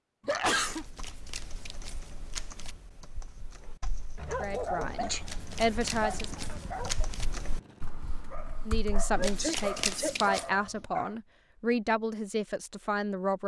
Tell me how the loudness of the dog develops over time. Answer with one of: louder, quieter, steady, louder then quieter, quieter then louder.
quieter then louder.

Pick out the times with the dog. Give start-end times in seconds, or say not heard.
3.6-11.2.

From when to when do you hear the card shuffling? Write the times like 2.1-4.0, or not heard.
0.7-2.8, 5.2-7.2, 9.2-10.5.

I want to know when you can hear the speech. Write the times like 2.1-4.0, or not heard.
4.4-6.5, 8.7-13.4.